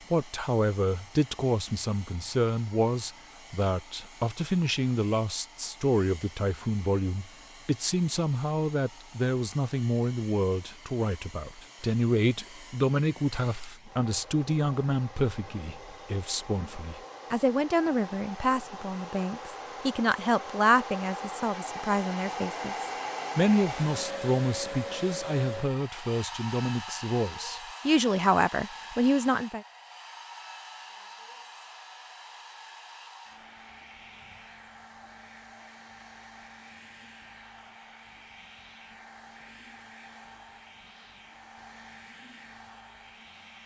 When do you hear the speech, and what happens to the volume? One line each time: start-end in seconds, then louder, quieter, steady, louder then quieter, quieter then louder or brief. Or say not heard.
0.1-29.6 steady.